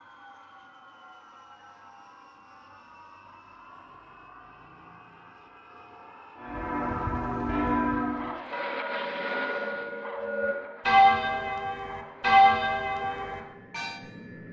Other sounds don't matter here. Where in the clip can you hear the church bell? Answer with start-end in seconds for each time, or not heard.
6.3-14.0.